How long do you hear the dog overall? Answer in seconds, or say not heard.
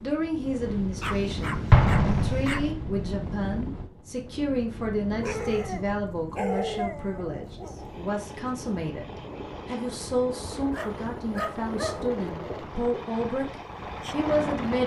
6 s.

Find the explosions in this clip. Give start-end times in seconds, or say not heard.
1.7-3.0.